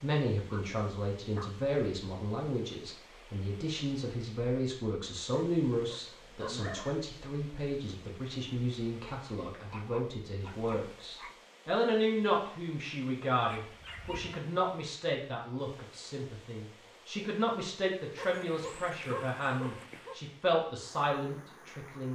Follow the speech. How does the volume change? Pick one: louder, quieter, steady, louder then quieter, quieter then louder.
steady.